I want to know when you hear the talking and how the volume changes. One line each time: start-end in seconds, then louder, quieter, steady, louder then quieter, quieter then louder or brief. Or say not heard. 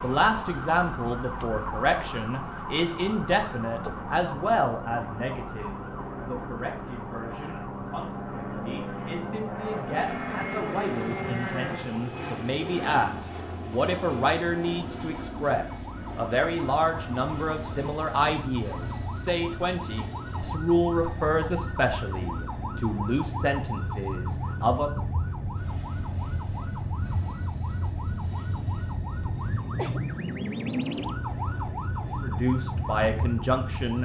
0.0-24.9 quieter then louder
32.2-34.0 brief.